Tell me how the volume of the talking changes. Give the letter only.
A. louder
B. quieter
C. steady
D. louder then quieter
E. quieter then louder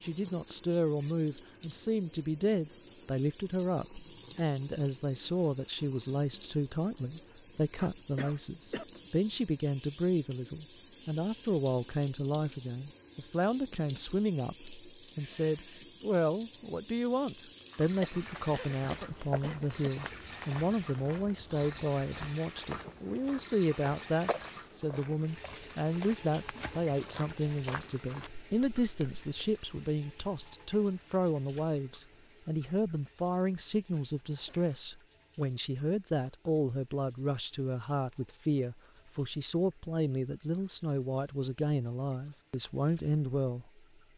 C.